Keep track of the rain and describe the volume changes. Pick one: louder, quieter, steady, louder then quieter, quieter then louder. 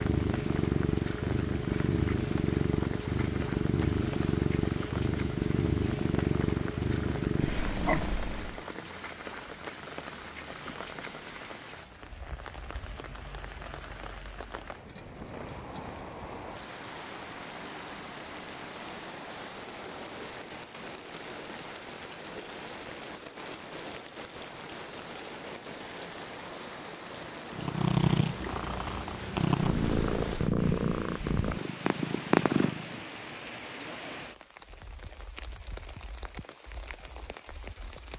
steady.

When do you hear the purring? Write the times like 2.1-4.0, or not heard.
0.0-8.6, 27.5-33.0.